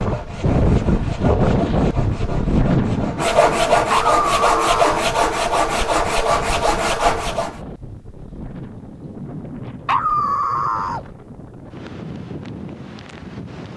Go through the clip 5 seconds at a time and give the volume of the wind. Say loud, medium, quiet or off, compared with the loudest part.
loud, quiet, quiet.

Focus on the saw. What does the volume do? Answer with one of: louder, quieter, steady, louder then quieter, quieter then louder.
louder.